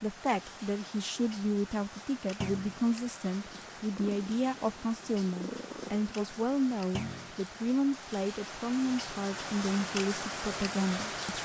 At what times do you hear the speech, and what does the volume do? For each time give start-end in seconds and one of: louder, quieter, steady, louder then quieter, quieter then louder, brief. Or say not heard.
0.0-11.4 steady.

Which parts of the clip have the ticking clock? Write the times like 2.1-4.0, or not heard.
not heard.